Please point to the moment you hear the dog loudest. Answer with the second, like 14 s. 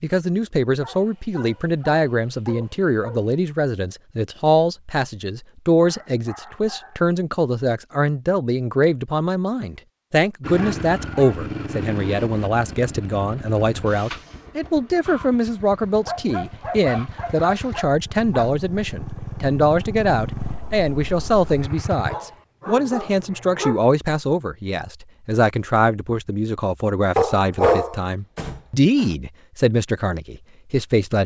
28 s.